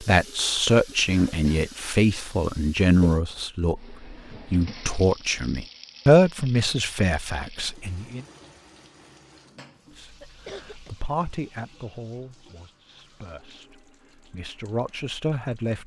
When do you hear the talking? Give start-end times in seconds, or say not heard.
0.0-8.2, 9.9-15.8.